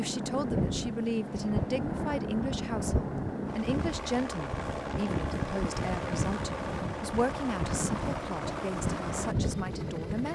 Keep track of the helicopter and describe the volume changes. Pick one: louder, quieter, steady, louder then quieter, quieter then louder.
steady.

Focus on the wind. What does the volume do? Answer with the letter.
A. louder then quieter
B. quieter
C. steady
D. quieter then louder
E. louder
C.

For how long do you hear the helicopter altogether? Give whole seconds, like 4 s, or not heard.
10 s.